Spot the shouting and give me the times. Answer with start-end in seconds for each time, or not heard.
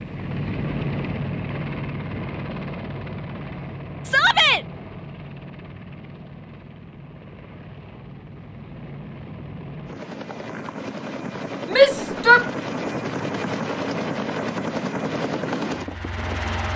4.0-4.7, 11.7-12.4.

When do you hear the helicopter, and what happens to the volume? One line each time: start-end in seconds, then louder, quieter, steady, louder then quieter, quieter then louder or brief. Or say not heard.
0.0-16.7 quieter then louder.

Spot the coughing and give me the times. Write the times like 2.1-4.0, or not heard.
not heard.